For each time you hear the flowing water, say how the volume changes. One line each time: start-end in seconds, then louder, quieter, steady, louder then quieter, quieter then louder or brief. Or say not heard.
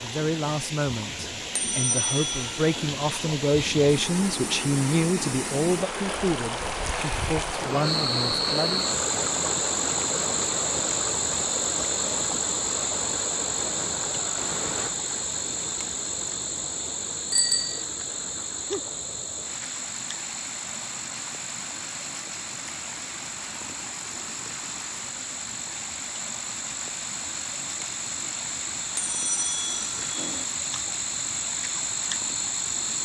0.0-33.0 quieter.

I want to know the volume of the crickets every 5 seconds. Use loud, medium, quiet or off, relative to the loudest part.
off, loud, loud, medium, medium, medium, loud.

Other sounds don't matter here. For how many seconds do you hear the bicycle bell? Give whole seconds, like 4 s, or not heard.
3 s.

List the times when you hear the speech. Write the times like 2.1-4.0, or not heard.
0.0-8.8.